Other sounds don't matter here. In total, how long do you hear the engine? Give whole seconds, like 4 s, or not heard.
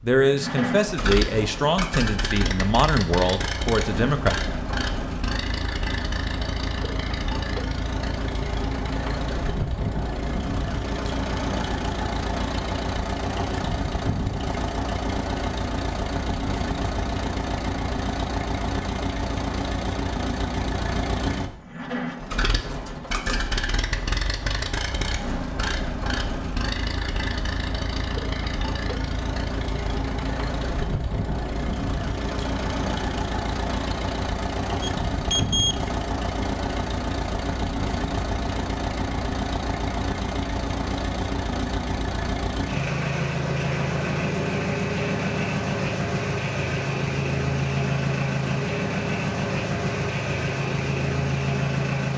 52 s.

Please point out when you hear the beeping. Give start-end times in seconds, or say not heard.
34.8-35.8.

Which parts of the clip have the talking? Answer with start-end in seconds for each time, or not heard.
0.0-4.3.